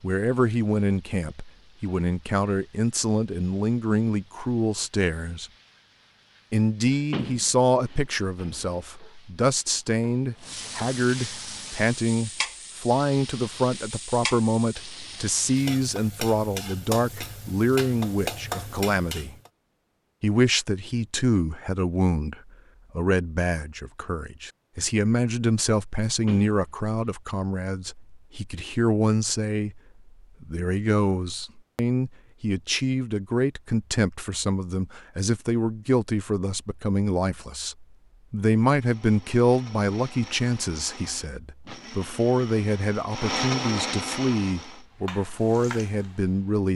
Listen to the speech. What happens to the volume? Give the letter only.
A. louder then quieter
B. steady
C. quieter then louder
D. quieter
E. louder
B.